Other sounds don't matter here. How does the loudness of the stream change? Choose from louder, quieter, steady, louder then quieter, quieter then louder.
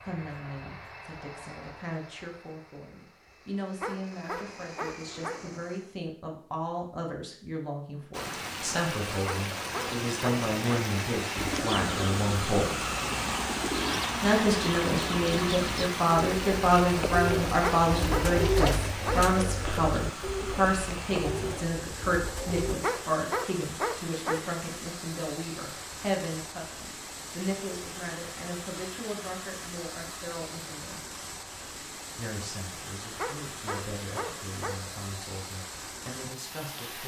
quieter.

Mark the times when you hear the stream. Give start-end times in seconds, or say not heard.
8.1-37.0.